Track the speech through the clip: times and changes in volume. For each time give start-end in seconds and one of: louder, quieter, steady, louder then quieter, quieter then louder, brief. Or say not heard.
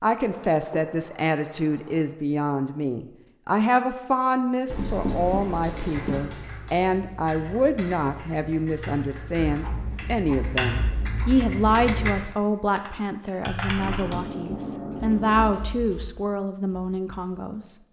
0.0-17.8 steady.